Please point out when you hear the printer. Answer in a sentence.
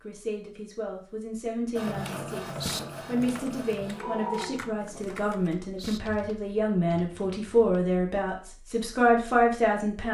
The printer can be heard from 1.8 to 5.3 s.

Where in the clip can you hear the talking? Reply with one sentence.
You can hear the talking from 0.0 to 10.0 s.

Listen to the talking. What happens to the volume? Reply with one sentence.
The loudness of the talking goes up.